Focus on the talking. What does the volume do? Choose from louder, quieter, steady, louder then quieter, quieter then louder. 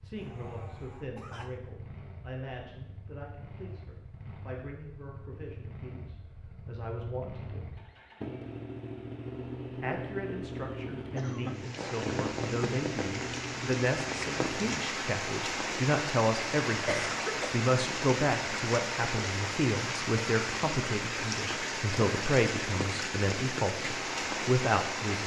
louder.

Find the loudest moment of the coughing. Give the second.
17 s.